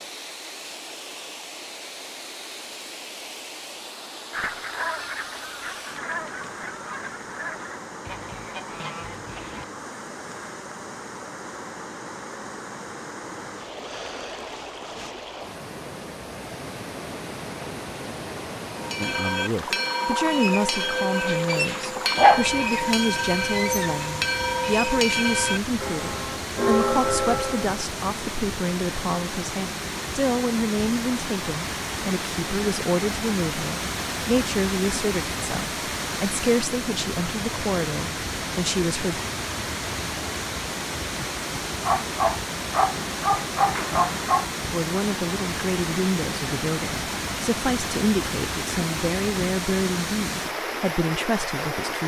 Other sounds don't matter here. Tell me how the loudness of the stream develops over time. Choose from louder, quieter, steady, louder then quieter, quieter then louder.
louder.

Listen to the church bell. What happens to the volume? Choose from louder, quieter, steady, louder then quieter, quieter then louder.
steady.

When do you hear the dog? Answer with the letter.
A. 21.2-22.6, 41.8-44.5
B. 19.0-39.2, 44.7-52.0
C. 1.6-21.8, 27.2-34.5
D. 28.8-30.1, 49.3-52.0
A.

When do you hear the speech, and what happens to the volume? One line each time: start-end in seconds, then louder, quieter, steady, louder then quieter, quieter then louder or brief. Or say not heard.
19.0-39.2 steady
44.7-52.0 steady.